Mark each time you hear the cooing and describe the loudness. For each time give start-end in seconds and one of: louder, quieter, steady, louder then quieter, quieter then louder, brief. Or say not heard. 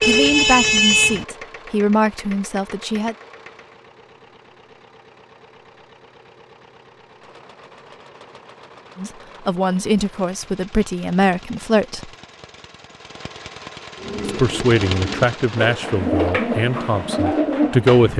13.9-18.1 louder.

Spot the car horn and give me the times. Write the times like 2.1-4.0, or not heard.
0.0-1.2.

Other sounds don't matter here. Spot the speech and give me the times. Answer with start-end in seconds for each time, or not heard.
0.1-3.1, 8.9-12.1, 14.2-18.1.